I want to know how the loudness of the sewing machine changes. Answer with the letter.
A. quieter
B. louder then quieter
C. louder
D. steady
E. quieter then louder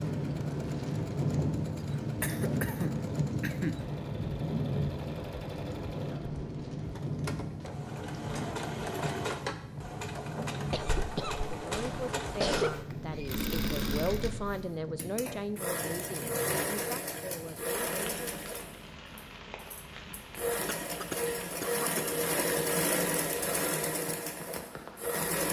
C.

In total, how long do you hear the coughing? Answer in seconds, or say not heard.
5 s.